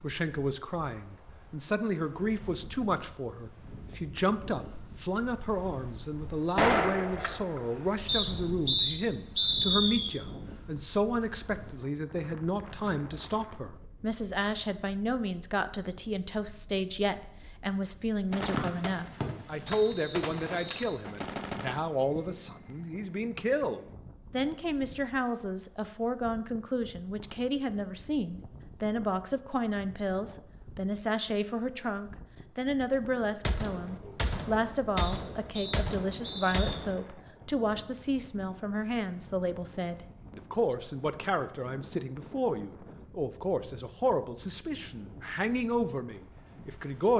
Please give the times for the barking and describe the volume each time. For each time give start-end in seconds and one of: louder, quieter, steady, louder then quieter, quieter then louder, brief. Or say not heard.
not heard.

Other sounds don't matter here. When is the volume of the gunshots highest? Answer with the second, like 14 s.
7 s.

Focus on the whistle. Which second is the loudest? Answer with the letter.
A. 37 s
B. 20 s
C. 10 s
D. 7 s
C.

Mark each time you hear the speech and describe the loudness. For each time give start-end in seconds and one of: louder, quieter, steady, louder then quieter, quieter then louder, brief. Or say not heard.
0.0-47.1 steady.